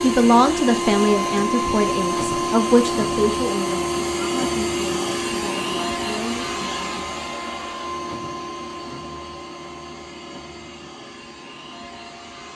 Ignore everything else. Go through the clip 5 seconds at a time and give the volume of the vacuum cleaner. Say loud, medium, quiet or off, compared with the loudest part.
loud, medium, quiet.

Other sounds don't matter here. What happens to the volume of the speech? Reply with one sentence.
The loudness of the speech goes down.